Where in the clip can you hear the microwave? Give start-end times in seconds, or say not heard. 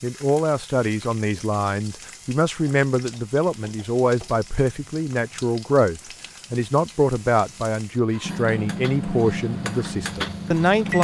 8.2-11.0.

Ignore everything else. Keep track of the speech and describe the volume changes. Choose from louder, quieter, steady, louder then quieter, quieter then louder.
steady.